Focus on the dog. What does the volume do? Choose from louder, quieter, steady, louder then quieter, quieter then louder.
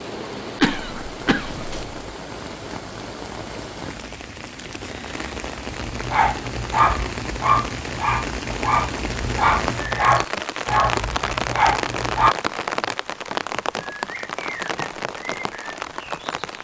steady.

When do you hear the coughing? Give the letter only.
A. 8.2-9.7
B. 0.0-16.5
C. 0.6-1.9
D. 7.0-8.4
C.